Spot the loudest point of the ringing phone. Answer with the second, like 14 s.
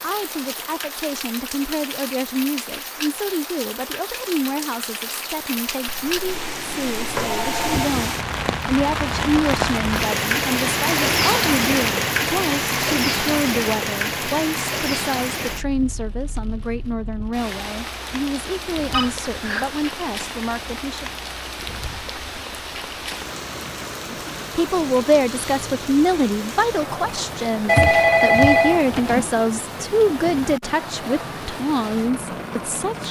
28 s.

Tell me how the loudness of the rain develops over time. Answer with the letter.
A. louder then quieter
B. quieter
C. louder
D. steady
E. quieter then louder
A.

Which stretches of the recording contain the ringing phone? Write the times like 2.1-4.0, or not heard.
5.8-7.9, 18.9-19.9, 27.6-29.3.